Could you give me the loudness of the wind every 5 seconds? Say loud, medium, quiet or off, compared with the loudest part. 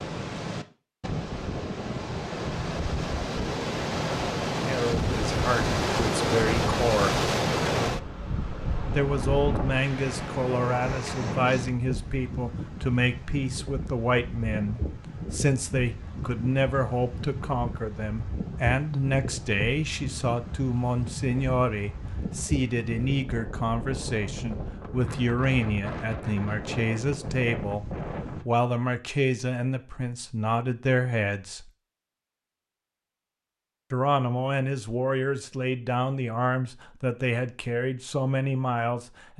loud, loud, medium, medium, medium, medium, off, off.